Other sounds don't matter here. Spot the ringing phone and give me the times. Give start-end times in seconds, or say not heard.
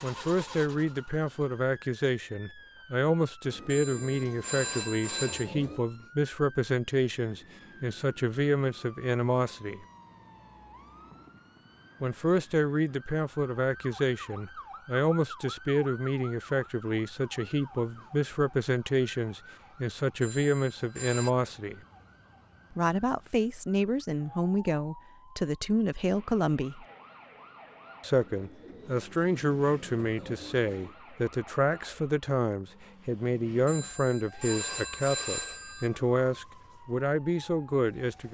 3.7-5.5, 20.2-21.3, 33.6-35.9.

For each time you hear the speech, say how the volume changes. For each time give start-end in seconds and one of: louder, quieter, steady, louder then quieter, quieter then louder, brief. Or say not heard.
0.0-9.8 steady
12.0-21.8 steady
22.7-26.9 steady
28.0-38.2 steady.